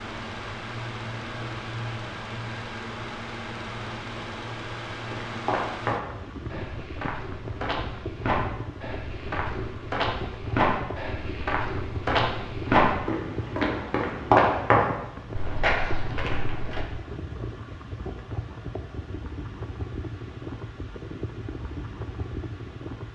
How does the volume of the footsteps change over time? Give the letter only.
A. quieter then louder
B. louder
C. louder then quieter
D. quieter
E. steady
B.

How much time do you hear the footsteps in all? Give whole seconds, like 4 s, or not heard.
12 s.